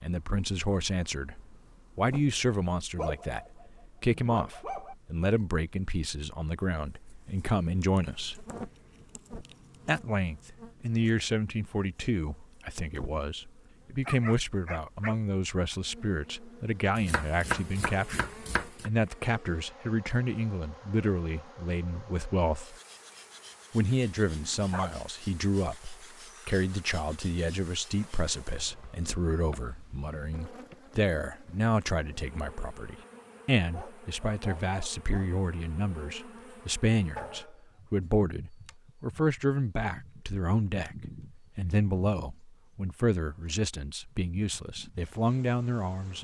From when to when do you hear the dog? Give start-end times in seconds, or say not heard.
3.0-5.0, 14.1-15.2, 24.2-25.0, 33.7-35.3, 37.1-38.2.